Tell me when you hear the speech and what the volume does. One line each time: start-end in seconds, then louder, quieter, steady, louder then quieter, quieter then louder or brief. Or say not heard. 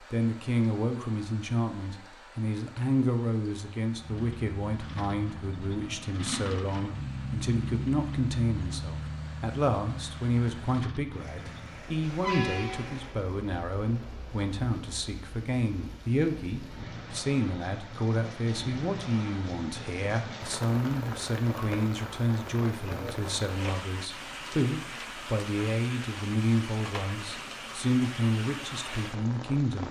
0.1-29.8 steady.